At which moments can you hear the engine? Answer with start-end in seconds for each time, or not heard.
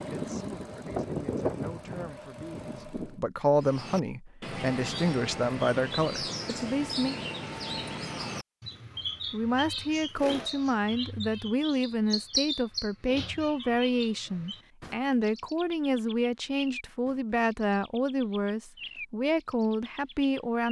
0.0-3.2.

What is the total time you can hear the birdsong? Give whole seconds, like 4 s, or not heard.
17 s.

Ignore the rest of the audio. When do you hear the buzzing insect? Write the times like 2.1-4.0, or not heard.
not heard.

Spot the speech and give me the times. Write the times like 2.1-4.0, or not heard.
0.0-7.2, 9.3-20.6.